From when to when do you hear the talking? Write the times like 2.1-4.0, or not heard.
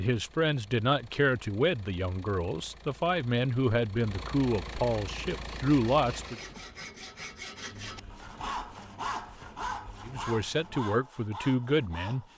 0.0-6.3, 10.1-12.2.